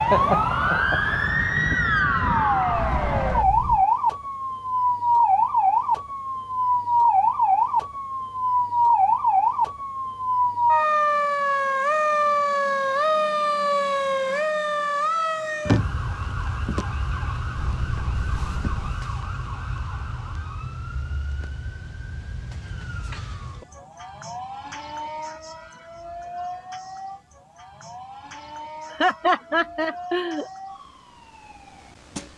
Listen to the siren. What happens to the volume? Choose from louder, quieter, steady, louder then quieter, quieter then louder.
quieter.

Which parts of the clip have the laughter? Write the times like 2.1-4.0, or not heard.
0.1-1.2, 28.9-30.4.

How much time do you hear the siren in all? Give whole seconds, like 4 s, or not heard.
32 s.